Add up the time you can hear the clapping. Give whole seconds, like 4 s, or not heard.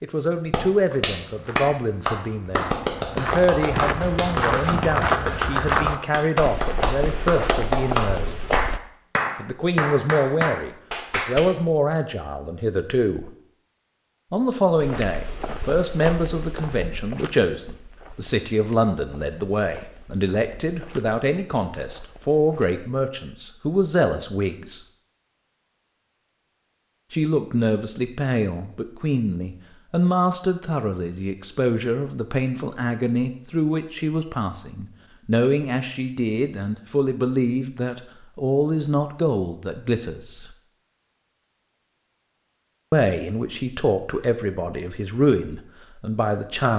11 s.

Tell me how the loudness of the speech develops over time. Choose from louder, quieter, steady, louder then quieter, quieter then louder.
steady.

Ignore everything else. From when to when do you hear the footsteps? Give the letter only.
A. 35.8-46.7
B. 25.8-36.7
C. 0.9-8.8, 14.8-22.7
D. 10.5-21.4
C.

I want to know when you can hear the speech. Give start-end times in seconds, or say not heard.
0.0-8.4, 9.3-13.3, 14.3-24.8, 27.1-40.5, 42.9-46.7.